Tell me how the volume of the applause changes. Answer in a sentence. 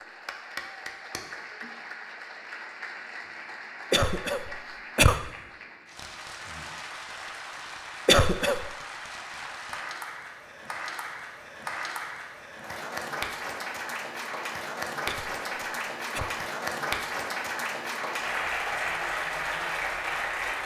The loudness of the applause goes up.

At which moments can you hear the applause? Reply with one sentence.
The applause can be heard from 0.0 to 20.6 s.